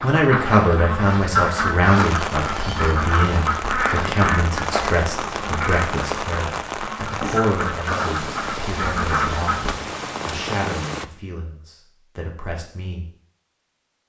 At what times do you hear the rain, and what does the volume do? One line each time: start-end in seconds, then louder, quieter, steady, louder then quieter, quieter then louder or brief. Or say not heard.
0.0-11.1 steady.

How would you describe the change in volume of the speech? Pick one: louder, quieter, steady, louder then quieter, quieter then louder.
quieter.